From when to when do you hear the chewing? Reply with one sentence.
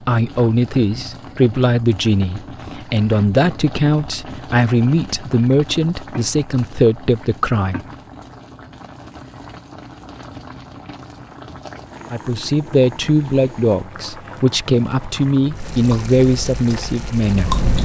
You can hear the chewing from 15.4 to 17.8 s.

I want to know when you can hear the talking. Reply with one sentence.
The talking can be heard from 0.1 to 7.8 s and from 12.1 to 17.6 s.